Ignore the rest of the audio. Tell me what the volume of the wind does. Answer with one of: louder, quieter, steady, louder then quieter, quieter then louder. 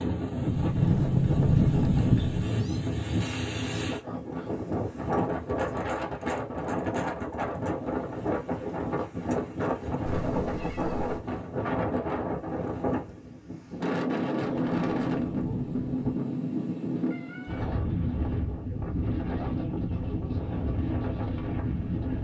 steady.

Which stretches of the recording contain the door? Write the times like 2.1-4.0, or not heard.
0.5-2.5, 14.4-16.0.